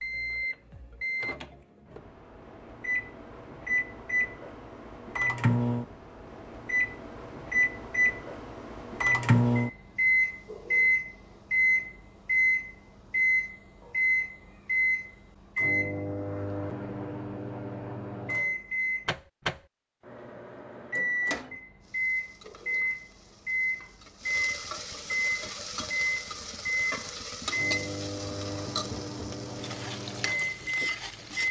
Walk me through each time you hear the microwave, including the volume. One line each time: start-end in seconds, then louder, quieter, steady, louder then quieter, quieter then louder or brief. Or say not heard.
0.0-31.4 louder then quieter.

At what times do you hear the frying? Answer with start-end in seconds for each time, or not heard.
21.8-31.4.